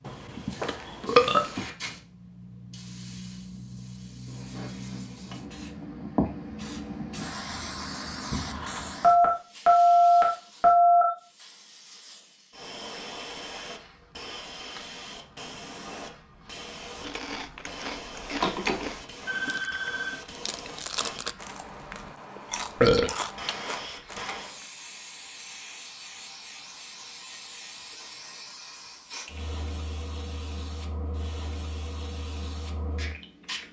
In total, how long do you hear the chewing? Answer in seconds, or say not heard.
8 s.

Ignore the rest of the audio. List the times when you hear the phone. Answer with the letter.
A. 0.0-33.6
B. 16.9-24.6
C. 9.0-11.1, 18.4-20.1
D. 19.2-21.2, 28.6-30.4
C.